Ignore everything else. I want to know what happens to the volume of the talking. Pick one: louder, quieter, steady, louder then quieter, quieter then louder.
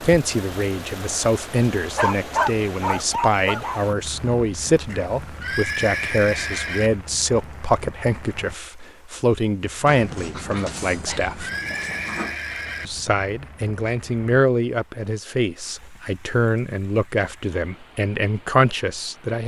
steady.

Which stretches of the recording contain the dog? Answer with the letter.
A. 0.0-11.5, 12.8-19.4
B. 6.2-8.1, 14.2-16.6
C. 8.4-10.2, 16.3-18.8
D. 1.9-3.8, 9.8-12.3
D.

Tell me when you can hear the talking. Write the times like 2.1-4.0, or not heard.
0.0-11.5, 12.8-19.4.